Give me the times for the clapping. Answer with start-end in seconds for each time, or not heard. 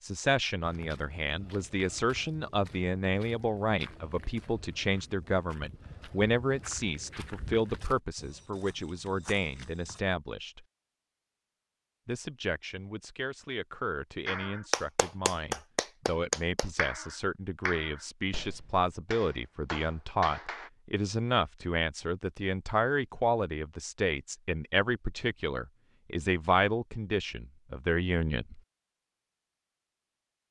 14.2-20.7.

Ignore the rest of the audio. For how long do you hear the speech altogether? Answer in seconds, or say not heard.
27 s.